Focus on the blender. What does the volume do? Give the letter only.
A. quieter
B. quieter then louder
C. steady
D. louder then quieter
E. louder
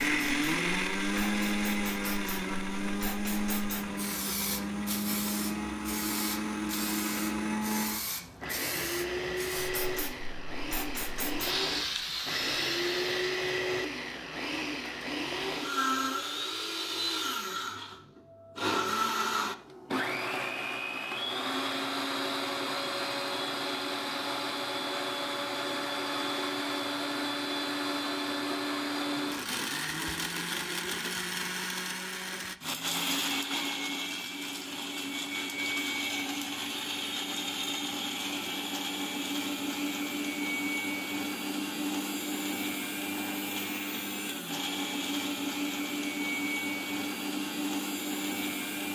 C.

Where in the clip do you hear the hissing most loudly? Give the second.
12 s.